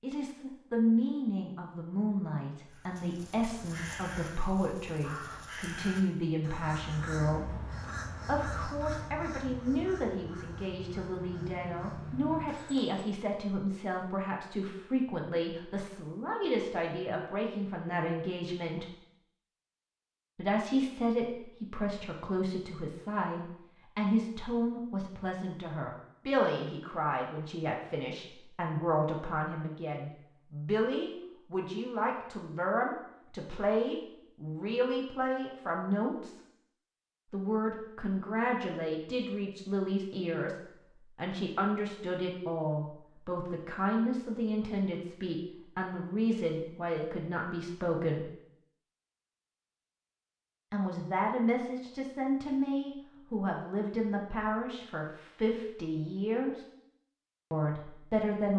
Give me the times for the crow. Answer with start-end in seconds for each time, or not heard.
2.6-13.1.